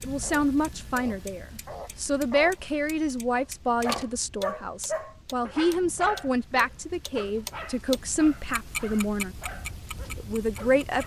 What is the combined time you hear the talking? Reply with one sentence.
The talking can be heard for 10 seconds in total.